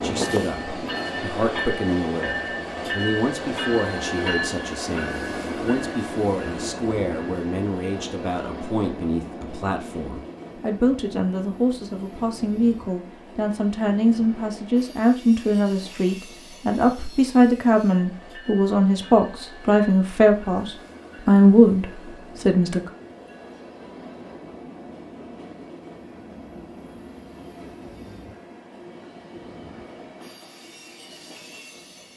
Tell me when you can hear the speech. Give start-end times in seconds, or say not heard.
0.0-22.9.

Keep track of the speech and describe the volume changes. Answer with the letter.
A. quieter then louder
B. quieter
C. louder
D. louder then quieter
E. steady
C.